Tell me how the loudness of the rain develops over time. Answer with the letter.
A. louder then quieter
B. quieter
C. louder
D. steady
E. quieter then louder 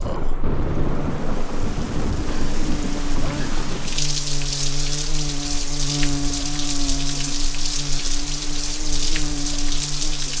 D.